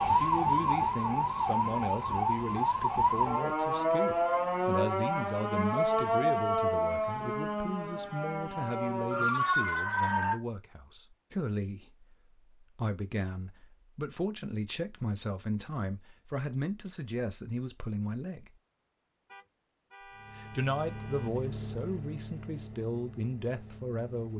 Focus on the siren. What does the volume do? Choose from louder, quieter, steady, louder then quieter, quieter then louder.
steady.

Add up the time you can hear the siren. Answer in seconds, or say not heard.
10 s.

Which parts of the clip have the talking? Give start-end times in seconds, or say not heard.
0.1-18.5, 20.4-24.3.